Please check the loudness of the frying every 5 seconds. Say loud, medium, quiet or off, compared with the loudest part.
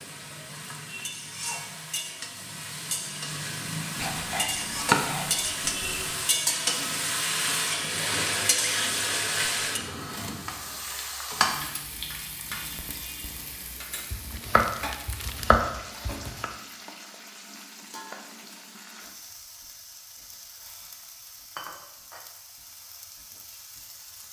medium, loud, medium, quiet, quiet.